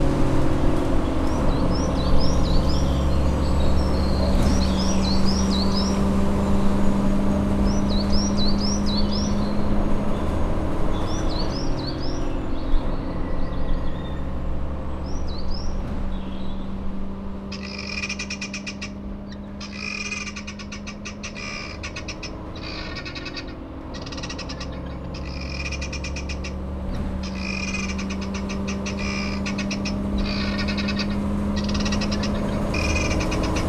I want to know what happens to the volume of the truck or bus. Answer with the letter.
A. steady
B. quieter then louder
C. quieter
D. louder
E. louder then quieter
B.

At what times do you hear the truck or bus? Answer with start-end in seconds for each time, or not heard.
0.0-33.6.